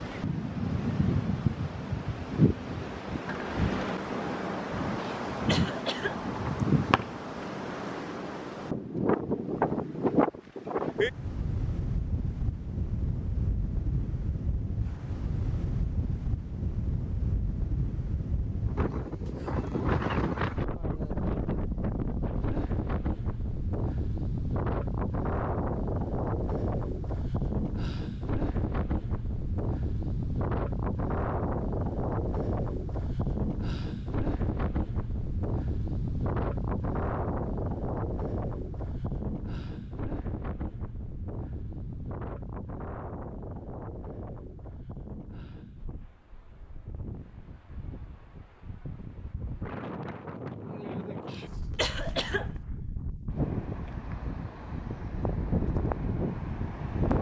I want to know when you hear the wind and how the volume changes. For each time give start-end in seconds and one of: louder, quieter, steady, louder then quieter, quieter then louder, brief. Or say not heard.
0.0-57.1 quieter.